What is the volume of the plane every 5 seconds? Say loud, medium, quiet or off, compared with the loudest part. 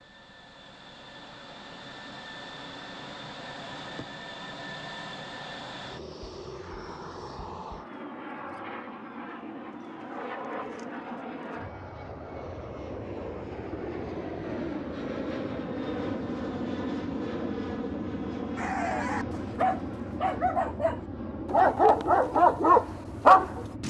medium, medium, loud, loud, medium.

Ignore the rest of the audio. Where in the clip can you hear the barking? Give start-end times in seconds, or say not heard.
18.6-23.6.